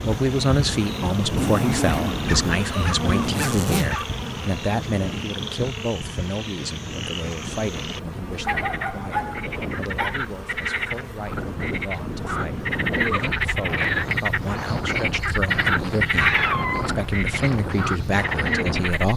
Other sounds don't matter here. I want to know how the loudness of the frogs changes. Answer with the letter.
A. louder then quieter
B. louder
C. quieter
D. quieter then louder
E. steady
B.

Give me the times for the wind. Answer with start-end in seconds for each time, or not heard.
0.0-19.1.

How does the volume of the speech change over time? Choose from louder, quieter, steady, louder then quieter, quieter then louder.
quieter then louder.